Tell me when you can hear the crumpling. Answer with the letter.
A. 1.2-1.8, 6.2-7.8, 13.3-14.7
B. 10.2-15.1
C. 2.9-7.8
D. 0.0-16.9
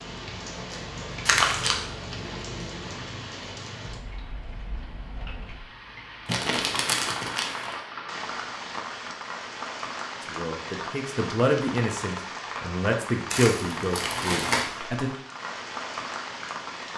A.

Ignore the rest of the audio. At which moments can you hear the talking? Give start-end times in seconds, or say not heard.
10.2-15.1.